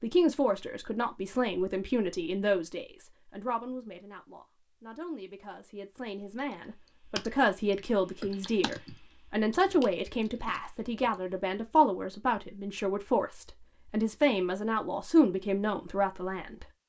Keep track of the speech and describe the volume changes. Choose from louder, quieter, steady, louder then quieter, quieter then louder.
quieter then louder.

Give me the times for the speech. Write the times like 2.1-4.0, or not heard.
0.0-16.6.